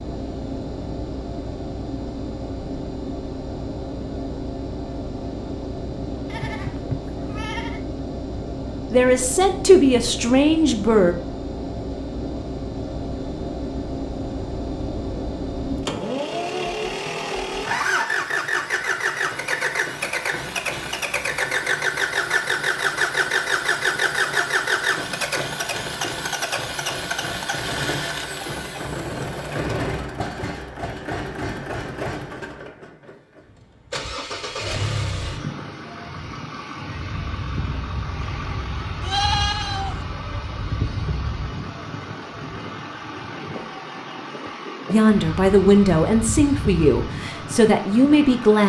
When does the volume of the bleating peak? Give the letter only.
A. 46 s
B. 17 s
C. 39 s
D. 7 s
C.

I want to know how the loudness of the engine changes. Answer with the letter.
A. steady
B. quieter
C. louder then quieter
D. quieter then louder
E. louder
C.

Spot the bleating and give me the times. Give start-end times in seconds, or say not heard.
6.2-7.8, 39.0-40.0.